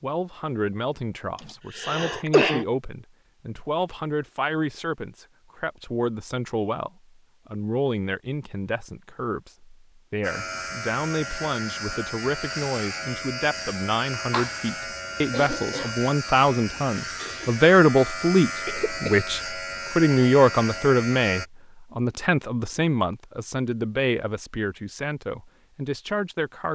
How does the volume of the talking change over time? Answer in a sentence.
The loudness of the talking goes up, then down.